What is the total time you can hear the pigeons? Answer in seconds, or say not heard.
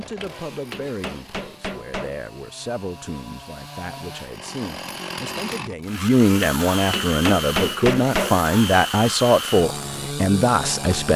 not heard.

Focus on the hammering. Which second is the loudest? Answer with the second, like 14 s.
8 s.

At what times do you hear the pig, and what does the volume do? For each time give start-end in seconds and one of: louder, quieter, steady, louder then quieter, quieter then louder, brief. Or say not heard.
not heard.